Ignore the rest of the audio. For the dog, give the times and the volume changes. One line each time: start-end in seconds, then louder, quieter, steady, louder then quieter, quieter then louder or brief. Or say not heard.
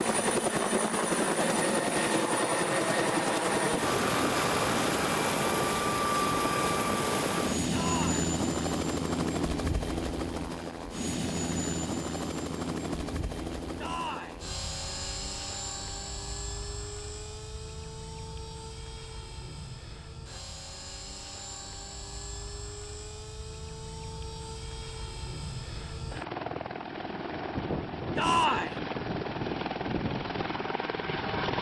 not heard.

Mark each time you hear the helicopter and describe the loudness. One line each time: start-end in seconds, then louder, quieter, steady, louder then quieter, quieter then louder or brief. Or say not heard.
0.0-31.5 quieter then louder.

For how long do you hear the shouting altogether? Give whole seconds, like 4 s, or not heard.
2 s.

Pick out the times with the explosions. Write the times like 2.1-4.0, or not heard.
not heard.